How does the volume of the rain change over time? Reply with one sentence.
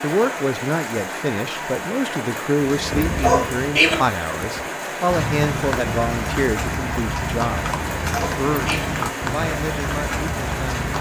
The volume of the rain stays about the same.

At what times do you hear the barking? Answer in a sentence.
You can hear the barking from 3.2 to 4.0 s and from 8.1 to 8.8 s.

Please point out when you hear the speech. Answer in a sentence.
The speech can be heard from 0.0 to 7.7 s and from 8.3 to 10.8 s.